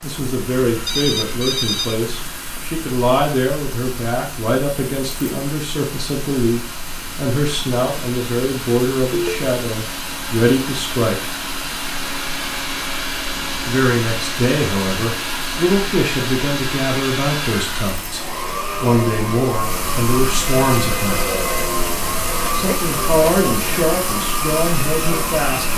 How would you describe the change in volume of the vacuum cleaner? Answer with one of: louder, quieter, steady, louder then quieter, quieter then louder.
louder.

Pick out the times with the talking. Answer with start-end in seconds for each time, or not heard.
0.0-11.4, 13.7-21.2, 22.6-25.7.